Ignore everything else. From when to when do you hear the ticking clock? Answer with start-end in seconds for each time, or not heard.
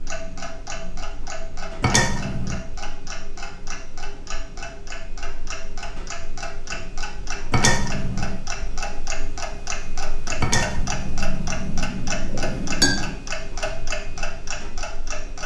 0.0-15.4.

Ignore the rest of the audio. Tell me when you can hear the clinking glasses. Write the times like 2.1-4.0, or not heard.
1.8-2.6, 7.5-8.4, 10.4-13.2.